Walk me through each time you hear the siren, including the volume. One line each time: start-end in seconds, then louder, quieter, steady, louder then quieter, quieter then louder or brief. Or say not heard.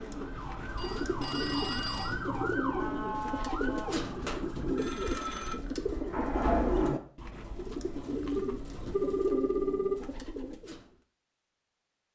0.0-4.9 louder then quieter.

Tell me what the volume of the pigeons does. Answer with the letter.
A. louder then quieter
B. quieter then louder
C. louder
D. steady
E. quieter
D.